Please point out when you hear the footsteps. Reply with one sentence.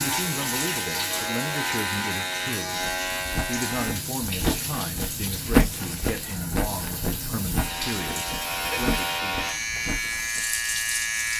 The footsteps can be heard from 2.8 to 10.4 s.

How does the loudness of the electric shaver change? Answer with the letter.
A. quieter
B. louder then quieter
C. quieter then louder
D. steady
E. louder
C.